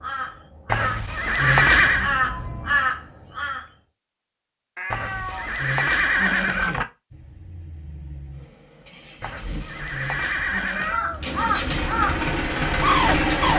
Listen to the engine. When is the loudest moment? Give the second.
13 s.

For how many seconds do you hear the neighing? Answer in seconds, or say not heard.
5 s.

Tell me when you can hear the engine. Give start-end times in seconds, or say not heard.
7.1-13.5.